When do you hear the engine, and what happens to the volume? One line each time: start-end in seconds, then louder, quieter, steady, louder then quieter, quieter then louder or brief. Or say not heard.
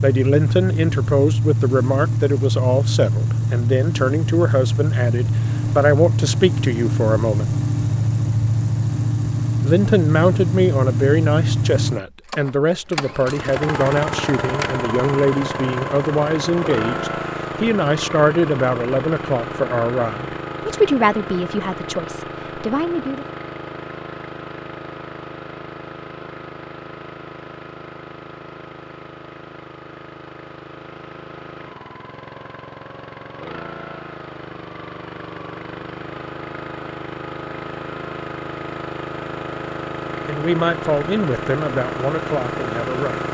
0.0-43.2 quieter then louder.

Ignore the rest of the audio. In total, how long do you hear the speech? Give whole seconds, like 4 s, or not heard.
24 s.